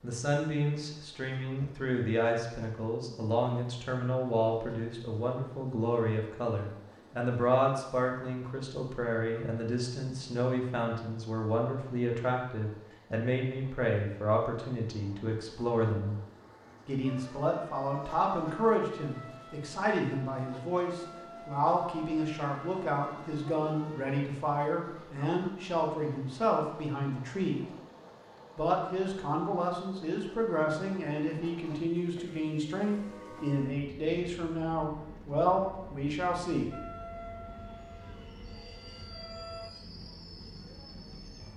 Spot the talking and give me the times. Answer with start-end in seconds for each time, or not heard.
0.0-16.1, 16.9-27.6, 28.6-36.7.